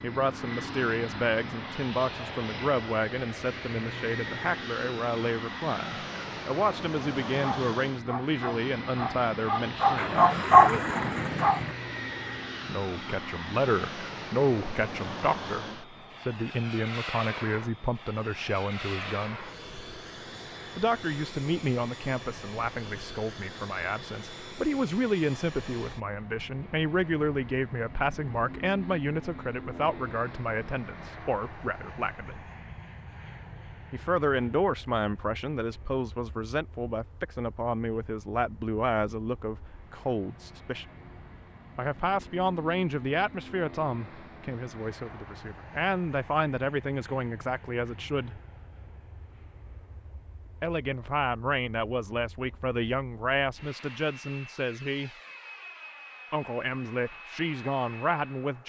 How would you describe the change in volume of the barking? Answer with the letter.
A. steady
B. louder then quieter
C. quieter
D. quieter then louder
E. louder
B.